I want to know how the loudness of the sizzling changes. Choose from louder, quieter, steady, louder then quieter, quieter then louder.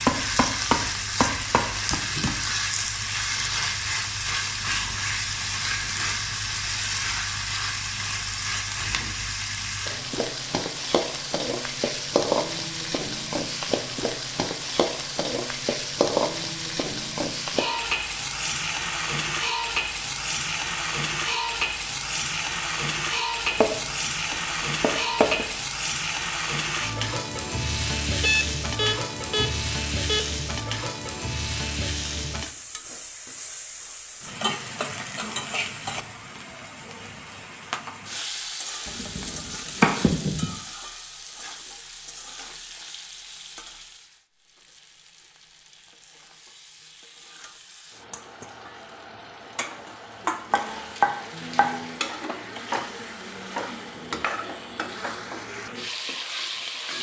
quieter.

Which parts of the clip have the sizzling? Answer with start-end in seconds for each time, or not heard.
0.0-56.9.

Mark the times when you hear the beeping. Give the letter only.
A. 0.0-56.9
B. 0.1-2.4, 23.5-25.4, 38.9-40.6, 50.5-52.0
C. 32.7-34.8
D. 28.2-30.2
D.